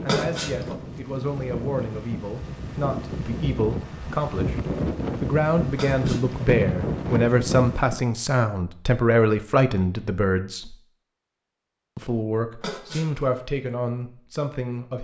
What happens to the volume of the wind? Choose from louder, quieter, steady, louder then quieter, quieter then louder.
louder.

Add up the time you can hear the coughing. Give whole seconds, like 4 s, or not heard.
2 s.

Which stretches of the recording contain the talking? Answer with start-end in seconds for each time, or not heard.
0.0-10.8, 11.9-15.0.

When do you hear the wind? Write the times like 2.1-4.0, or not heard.
0.0-8.0.